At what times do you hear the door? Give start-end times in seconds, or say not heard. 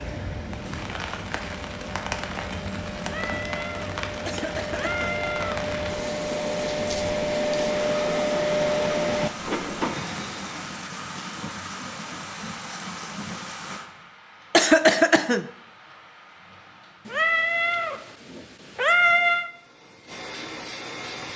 not heard.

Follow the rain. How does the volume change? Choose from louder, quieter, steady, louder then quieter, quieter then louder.
quieter.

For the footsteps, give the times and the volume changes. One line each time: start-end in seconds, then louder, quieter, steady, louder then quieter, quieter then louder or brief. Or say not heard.
not heard.